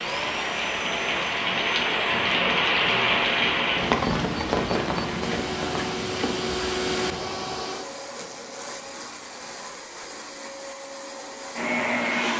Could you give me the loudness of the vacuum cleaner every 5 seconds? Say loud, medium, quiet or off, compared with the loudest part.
medium, loud, loud.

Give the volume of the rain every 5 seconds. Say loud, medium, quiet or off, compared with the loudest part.
loud, medium, off.